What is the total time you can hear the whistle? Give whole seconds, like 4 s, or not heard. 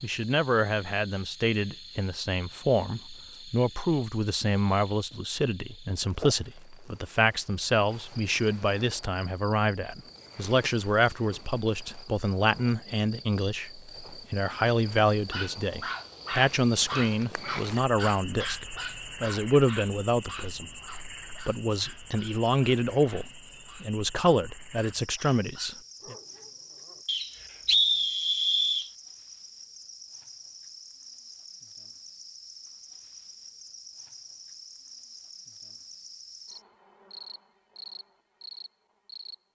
2 s.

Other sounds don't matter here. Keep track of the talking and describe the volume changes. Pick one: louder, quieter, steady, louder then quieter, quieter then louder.
steady.